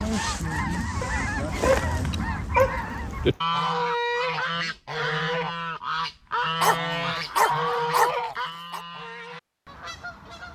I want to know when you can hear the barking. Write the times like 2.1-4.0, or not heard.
1.0-3.4, 6.6-8.8.